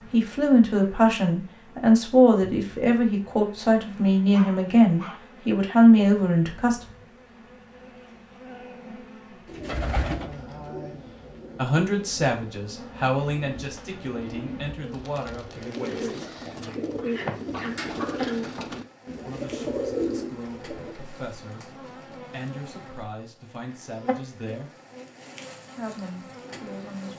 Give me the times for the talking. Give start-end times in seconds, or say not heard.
0.0-6.8, 11.6-16.1, 19.2-24.7, 25.8-27.1.